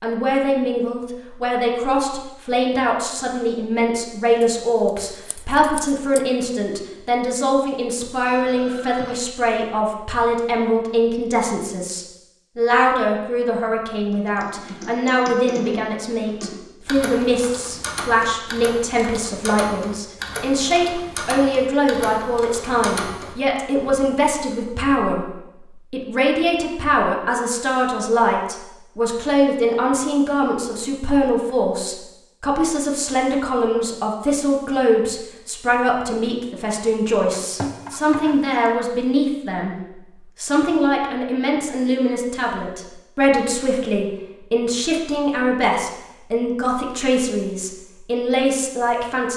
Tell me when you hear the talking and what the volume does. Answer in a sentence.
You can hear the talking from 0.0 to 25.2 s, at a steady volume; from 25.9 to 39.8 s, at a steady volume; and from 40.4 to 49.3 s, at a steady volume.